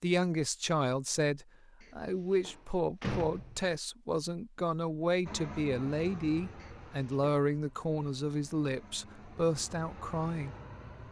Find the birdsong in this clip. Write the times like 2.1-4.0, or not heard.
not heard.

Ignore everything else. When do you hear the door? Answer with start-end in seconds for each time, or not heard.
1.8-3.8, 6.5-7.4.